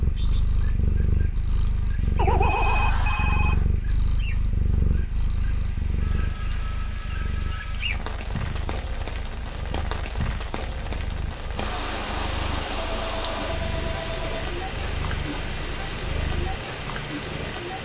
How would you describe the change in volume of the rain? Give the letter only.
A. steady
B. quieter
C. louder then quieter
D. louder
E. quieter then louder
D.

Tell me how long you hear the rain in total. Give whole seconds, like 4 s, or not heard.
18 s.